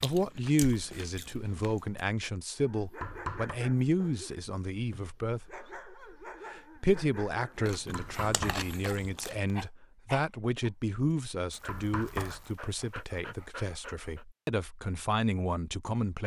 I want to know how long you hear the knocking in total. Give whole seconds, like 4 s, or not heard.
2 s.